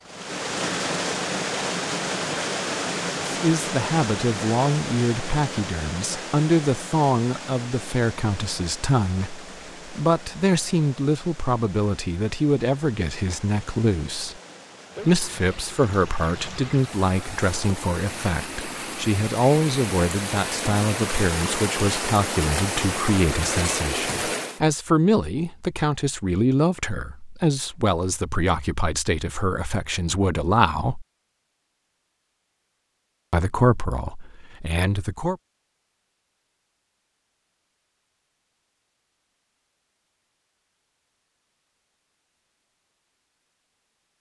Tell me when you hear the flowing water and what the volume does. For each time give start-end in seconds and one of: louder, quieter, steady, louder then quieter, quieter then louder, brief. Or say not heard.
0.0-24.6 quieter then louder.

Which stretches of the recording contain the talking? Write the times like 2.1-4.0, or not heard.
3.2-14.4, 15.1-31.1, 33.3-35.4.